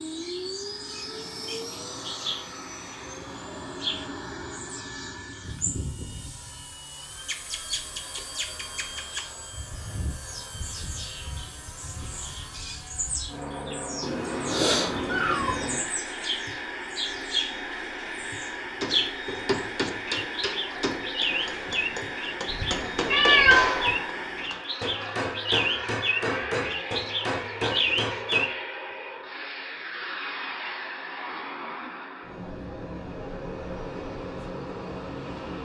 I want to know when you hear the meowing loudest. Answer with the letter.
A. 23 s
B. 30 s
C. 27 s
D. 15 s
A.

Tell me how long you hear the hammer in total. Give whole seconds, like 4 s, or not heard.
10 s.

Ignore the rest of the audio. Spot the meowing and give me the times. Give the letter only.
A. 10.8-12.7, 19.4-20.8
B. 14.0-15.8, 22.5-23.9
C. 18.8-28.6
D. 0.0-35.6
B.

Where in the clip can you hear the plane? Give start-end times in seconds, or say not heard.
0.0-35.6.